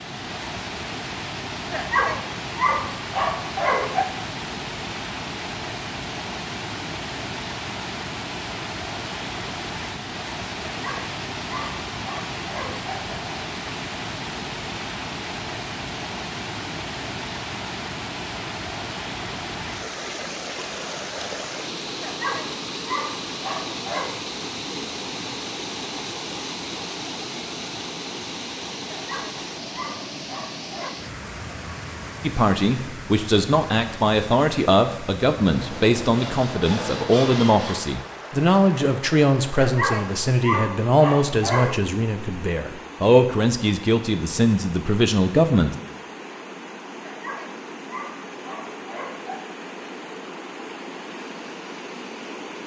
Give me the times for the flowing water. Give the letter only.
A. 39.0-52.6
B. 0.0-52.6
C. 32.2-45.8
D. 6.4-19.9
B.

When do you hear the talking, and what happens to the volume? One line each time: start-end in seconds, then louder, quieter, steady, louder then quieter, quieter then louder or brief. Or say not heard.
32.2-45.8 steady.